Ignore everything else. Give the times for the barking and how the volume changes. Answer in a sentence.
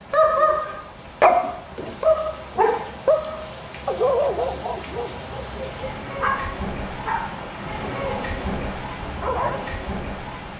The barking can be heard from 0.1 to 9.7 s, getting quieter.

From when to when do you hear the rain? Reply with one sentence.
The rain can be heard from 0.0 to 10.5 s.